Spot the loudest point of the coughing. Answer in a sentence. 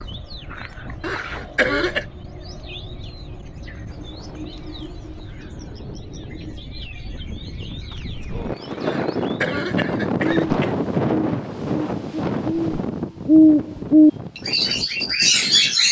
The volume of the coughing peaks at 2 seconds.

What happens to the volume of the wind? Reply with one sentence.
The loudness of the wind goes up, then down.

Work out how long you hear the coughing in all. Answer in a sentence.
You can hear the coughing for 3 seconds altogether.